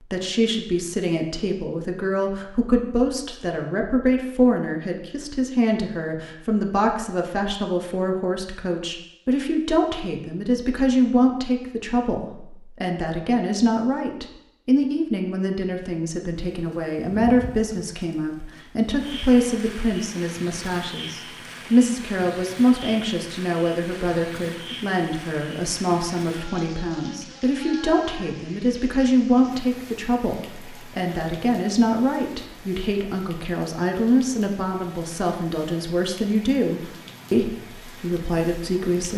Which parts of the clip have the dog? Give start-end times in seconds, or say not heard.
not heard.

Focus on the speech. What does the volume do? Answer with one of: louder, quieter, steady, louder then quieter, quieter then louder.
steady.